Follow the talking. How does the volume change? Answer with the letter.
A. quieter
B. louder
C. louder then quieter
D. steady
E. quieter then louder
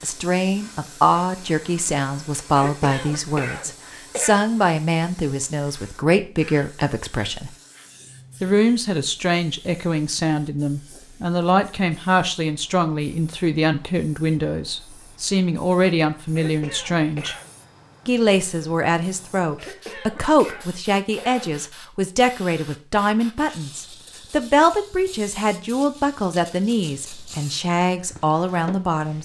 D.